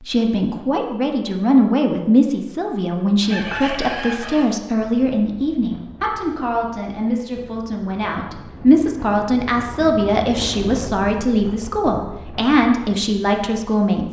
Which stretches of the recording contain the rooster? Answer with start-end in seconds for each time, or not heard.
3.2-4.6.